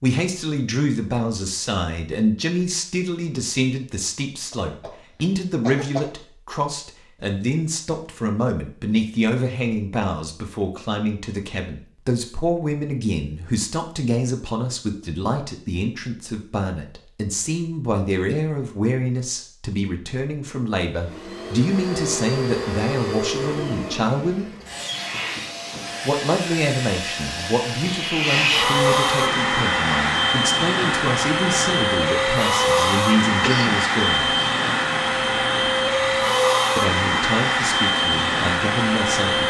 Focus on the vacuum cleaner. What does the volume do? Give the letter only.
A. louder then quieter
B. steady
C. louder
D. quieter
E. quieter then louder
C.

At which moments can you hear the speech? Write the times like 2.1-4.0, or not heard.
0.0-24.5, 26.1-34.4, 36.8-39.4.